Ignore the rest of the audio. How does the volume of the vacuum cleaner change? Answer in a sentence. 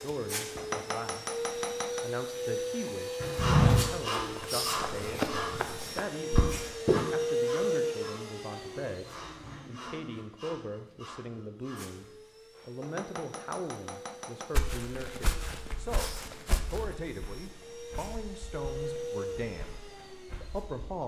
The loudness of the vacuum cleaner goes down, then up.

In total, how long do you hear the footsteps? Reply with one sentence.
You can hear the footsteps for 10 seconds altogether.